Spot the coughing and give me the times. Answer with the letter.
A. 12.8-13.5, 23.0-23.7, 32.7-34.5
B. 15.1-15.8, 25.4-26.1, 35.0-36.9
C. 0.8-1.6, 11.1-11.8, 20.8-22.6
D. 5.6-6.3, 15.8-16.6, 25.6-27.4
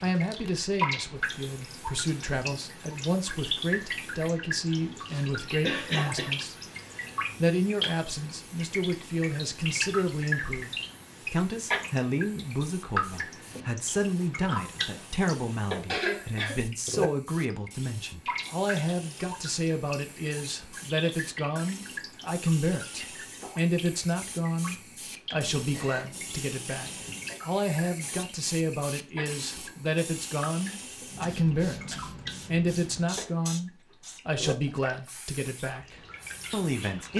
D.